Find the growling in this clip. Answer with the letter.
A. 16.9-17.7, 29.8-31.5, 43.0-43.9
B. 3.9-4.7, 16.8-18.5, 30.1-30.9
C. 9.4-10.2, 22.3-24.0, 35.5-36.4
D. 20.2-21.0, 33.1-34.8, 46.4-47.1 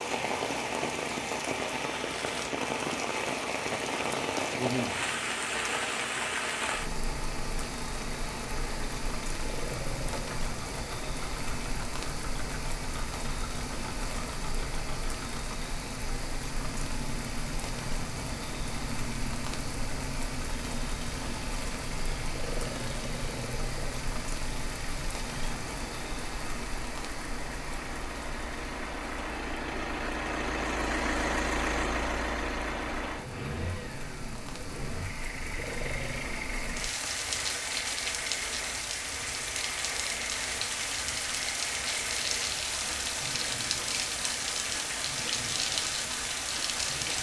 C.